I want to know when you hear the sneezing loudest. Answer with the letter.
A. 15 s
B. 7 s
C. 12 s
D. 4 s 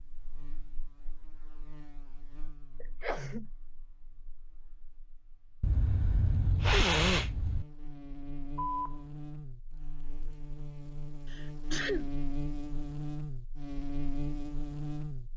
B.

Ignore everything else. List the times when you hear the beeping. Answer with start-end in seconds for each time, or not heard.
8.6-9.0.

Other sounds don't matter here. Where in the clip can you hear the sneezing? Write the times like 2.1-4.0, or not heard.
2.8-3.5, 5.6-7.7, 11.2-12.1.